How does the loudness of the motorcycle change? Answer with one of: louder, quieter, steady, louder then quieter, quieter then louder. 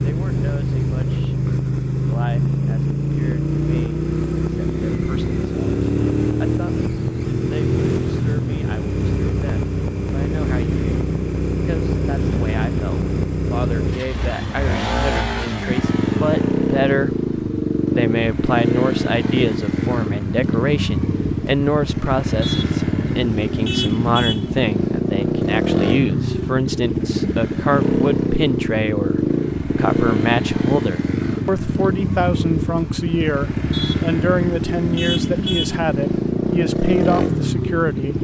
steady.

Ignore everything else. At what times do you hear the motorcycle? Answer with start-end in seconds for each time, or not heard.
0.0-38.1.